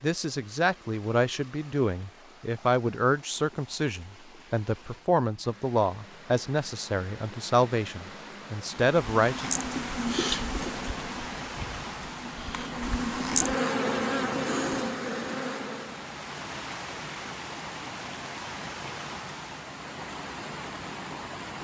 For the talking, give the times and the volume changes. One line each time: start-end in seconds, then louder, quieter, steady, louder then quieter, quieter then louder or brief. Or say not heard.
0.0-9.5 steady.